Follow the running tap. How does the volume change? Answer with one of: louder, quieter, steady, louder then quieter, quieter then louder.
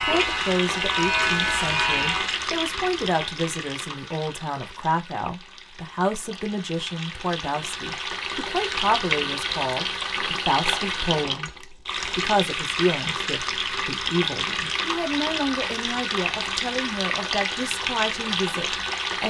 quieter then louder.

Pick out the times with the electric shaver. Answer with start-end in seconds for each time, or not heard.
0.0-2.4.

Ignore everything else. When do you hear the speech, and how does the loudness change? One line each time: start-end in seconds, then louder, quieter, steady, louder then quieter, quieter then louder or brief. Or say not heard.
0.0-19.2 steady.